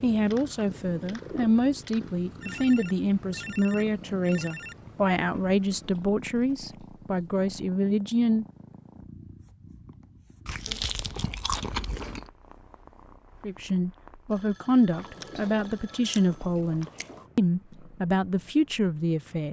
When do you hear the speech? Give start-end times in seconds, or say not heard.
0.0-8.4, 13.4-19.4.